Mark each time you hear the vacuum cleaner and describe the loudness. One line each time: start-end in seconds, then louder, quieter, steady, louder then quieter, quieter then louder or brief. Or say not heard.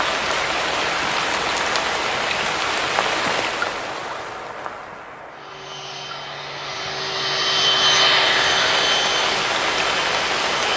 5.3-10.7 louder then quieter.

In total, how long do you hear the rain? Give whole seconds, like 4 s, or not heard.
11 s.